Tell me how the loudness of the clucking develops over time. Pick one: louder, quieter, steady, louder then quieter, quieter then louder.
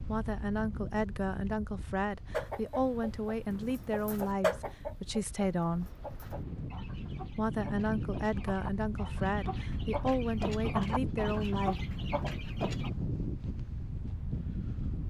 quieter then louder.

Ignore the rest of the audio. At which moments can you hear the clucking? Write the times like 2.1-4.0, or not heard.
2.3-12.9.